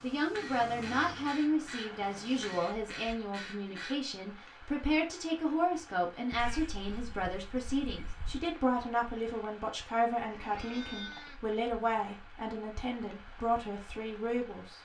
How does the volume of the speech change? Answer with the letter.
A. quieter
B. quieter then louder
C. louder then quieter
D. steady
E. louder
D.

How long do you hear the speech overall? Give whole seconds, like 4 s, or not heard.
15 s.